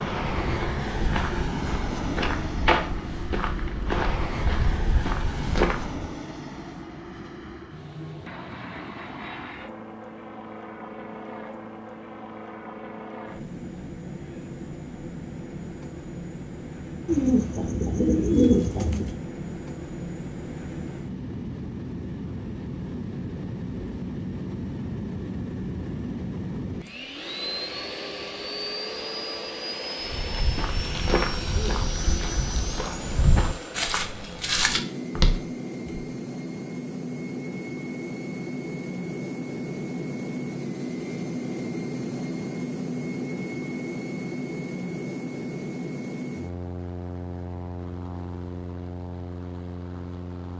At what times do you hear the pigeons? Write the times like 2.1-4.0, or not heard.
17.1-19.1.